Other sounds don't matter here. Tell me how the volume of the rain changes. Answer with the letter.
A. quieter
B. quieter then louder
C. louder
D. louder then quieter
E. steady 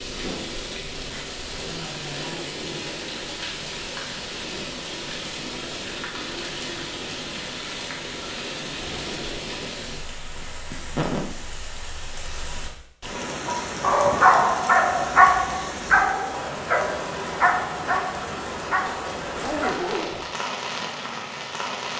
E.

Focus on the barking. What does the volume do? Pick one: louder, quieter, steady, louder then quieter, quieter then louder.
quieter.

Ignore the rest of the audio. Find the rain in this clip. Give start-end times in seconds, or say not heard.
0.0-21.9.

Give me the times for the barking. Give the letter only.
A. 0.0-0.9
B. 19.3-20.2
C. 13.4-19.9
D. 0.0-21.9
C.